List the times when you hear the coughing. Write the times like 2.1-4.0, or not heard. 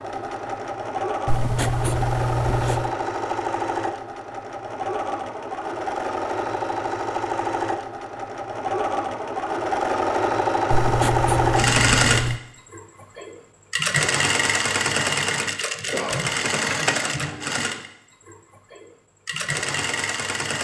15.9-16.9.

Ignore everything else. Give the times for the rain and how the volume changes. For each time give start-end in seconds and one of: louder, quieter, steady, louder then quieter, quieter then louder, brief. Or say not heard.
not heard.